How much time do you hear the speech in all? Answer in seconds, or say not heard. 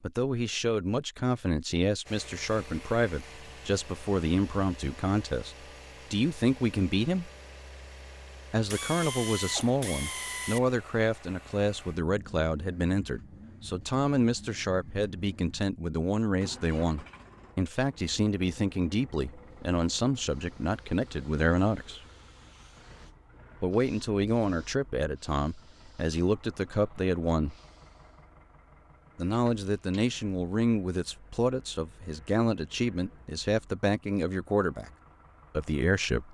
31 s.